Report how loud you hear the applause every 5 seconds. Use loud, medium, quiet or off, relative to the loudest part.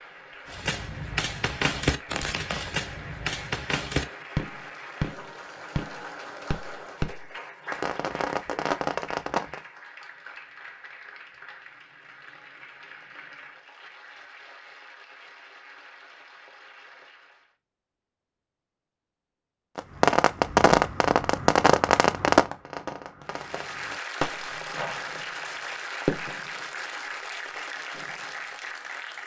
medium, medium, medium, quiet, loud, loud.